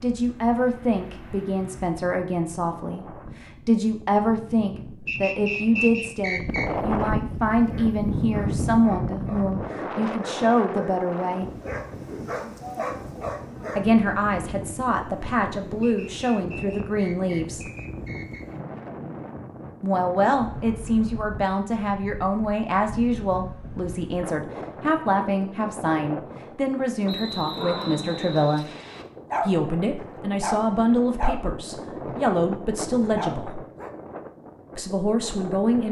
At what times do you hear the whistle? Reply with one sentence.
The whistle can be heard from 5.0 to 6.7 s, from 15.8 to 18.6 s and from 27.1 to 29.1 s.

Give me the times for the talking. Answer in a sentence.
The talking can be heard from 0.0 to 11.5 s, from 13.8 to 17.6 s, from 19.8 to 28.6 s, from 29.4 to 33.6 s and from 34.8 to 35.8 s.